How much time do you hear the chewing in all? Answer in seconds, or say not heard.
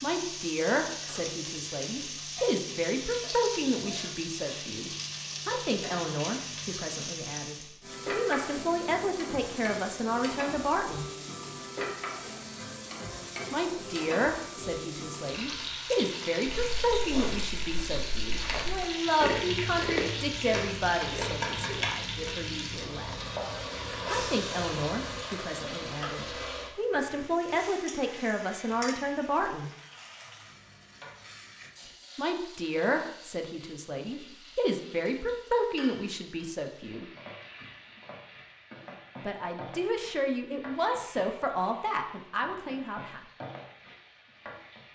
9 s.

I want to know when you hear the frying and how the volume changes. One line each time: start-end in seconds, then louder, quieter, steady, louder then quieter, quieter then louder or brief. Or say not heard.
0.0-44.8 quieter.